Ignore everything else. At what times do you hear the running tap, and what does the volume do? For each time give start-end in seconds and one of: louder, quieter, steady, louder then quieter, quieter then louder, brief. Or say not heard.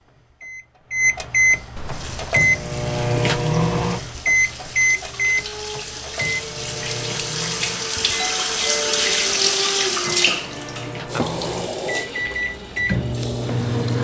1.9-14.0 louder then quieter.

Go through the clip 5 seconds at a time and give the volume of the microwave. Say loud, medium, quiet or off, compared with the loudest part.
loud, medium, medium.